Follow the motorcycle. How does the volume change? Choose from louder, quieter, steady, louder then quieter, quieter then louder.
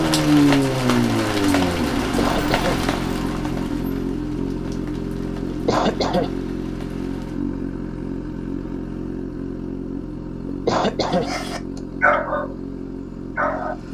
quieter.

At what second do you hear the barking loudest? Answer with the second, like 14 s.
12 s.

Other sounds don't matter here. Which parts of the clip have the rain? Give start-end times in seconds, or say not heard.
0.0-7.4.